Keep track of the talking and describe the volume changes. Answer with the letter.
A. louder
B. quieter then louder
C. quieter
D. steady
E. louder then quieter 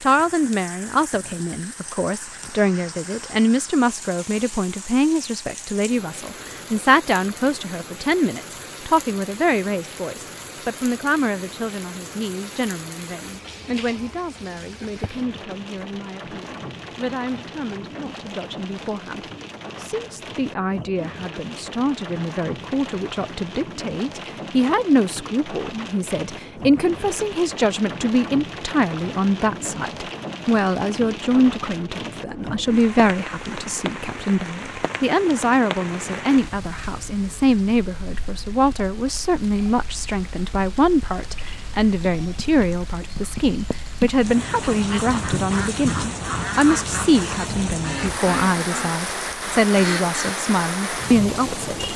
B.